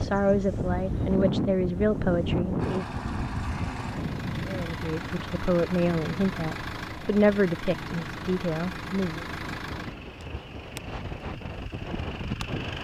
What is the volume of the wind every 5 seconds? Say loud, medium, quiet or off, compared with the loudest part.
loud, medium, medium.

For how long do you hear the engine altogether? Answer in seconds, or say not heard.
10 s.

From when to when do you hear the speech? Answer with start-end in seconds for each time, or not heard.
0.0-2.9, 4.5-9.2.